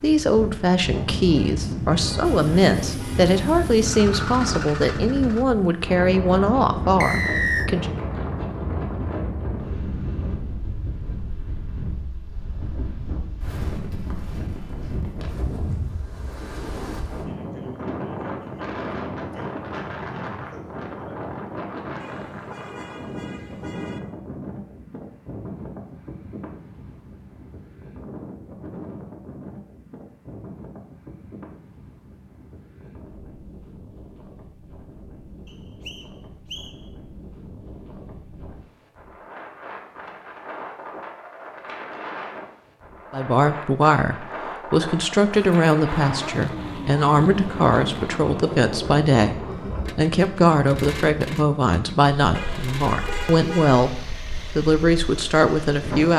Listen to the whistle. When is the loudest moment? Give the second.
7 s.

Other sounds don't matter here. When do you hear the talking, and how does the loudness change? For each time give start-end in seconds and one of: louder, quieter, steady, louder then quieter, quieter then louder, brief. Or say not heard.
0.0-7.9 steady
43.1-56.1 steady.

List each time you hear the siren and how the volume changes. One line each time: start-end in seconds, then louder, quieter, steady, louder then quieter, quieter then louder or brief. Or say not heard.
not heard.